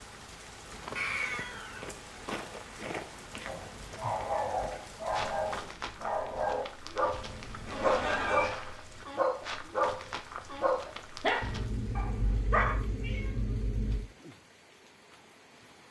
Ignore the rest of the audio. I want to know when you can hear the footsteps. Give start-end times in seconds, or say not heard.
0.7-11.8.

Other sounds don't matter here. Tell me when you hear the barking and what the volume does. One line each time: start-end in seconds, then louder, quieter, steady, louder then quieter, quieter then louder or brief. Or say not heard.
3.5-12.8 steady.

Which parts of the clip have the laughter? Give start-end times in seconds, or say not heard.
7.7-8.6.